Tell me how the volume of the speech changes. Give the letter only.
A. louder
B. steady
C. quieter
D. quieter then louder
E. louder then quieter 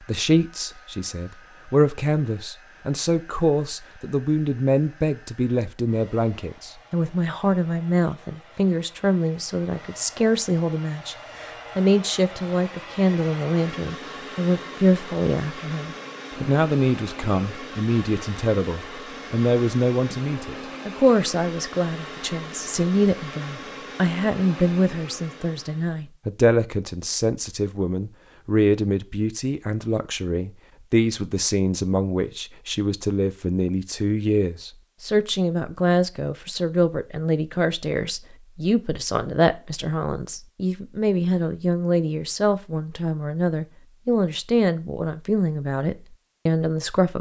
B.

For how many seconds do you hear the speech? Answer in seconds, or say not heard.
47 s.